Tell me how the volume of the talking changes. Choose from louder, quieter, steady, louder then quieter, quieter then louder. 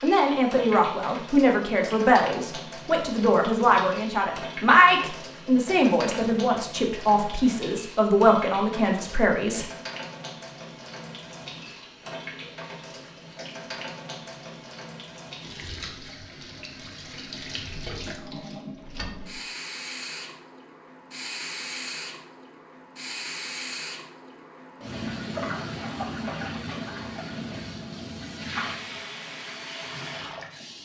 steady.